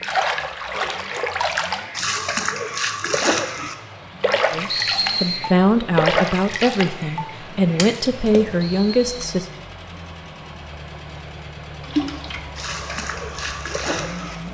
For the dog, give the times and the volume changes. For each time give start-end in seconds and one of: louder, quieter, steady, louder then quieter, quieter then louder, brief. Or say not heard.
not heard.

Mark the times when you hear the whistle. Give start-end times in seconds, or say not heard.
4.7-5.4, 8.6-9.1.